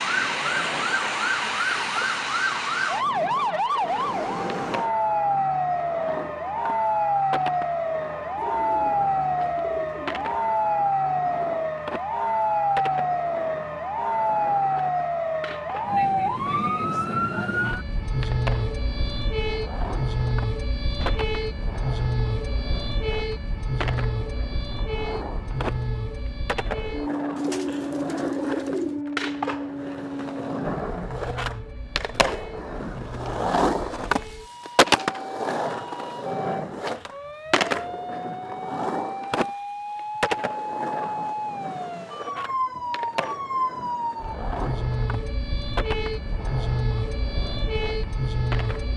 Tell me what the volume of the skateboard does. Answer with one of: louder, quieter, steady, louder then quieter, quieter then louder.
louder then quieter.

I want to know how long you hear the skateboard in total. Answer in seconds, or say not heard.
49 s.